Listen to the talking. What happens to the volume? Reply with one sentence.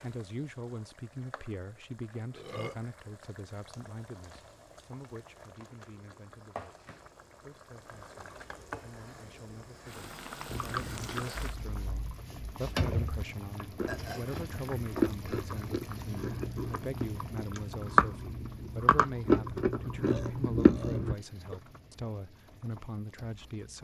The volume of the talking goes down, then up.